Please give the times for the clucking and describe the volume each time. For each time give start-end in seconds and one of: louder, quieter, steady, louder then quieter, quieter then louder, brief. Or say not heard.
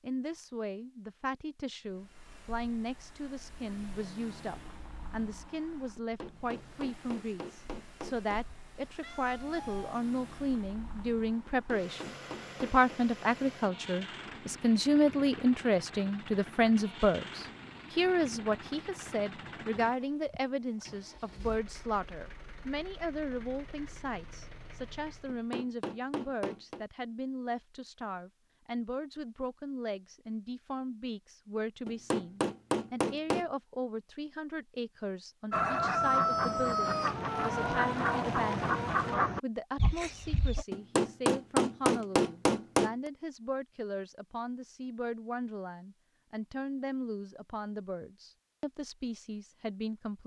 35.5-40.6 quieter.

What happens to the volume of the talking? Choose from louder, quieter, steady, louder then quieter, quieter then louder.
louder then quieter.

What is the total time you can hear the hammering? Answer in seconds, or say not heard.
9 s.